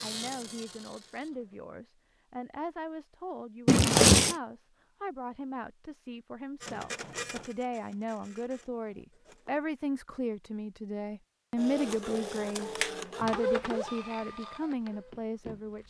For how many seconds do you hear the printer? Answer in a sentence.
The printer can be heard for 9 seconds in total.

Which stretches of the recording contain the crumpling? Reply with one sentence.
You can hear the crumpling from 3.6 to 4.3 s and from 11.8 to 12.9 s.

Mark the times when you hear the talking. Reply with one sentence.
You can hear the talking from 0.0 to 15.8 s.